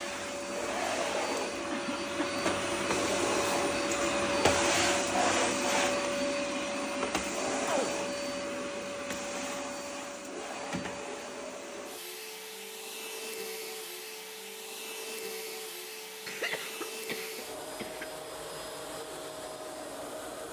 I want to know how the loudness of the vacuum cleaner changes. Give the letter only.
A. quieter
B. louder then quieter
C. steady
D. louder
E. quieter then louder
A.